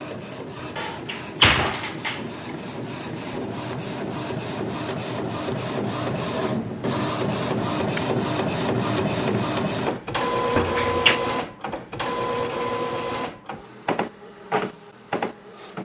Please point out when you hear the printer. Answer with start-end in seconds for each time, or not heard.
0.0-15.8.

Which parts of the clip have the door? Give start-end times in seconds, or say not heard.
0.6-2.2, 10.6-11.2.